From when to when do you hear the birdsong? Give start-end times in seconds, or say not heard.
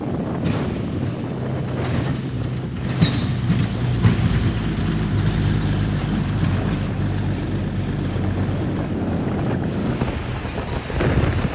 not heard.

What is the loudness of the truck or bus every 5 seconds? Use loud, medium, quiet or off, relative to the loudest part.
loud, loud, medium.